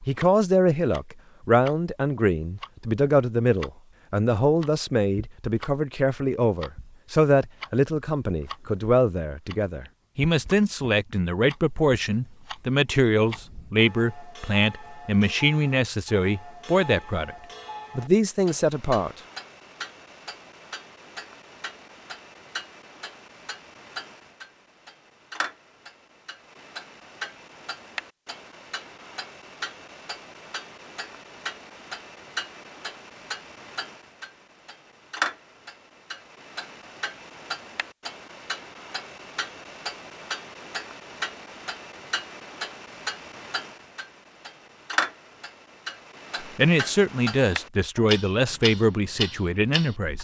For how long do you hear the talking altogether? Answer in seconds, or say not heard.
22 s.